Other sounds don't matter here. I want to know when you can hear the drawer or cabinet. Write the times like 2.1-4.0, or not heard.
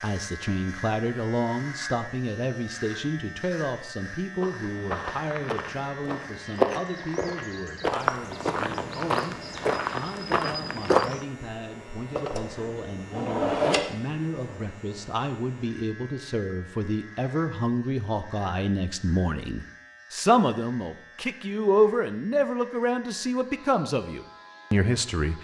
12.2-13.8.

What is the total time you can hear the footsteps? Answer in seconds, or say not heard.
7 s.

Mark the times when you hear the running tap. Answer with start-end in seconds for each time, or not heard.
not heard.